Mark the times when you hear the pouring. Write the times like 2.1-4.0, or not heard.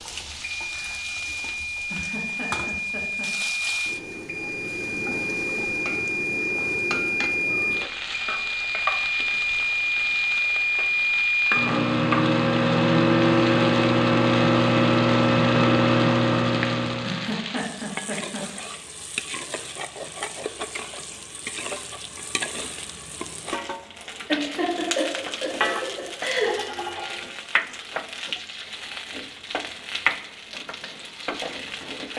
not heard.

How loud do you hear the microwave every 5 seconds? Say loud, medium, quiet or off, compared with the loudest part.
medium, medium, loud, loud, off, off, off.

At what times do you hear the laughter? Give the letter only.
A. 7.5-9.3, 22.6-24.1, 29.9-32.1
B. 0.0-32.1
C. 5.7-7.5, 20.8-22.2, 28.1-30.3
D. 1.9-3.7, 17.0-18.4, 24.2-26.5
D.